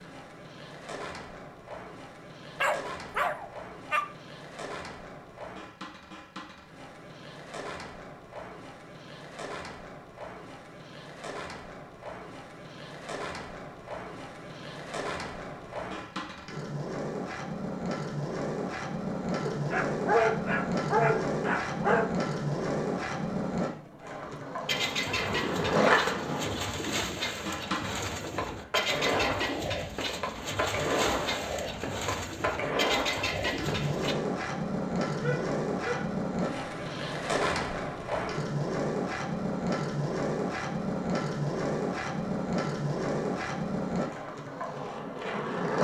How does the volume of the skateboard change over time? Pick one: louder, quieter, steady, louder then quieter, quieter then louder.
louder.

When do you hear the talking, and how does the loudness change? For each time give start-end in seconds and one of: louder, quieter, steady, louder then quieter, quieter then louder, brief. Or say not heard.
not heard.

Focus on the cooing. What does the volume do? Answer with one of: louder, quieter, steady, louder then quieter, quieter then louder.
steady.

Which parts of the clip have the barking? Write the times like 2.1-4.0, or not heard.
2.6-4.0, 19.4-22.1, 35.2-36.1.